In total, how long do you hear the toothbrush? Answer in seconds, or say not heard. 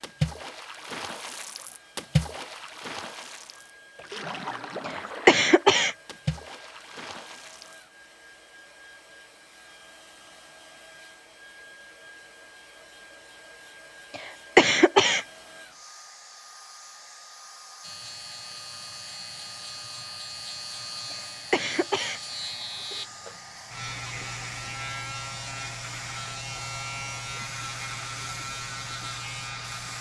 not heard.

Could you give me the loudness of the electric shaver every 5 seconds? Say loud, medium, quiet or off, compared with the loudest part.
off, off, off, medium, loud, loud.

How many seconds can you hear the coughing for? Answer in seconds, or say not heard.
3 s.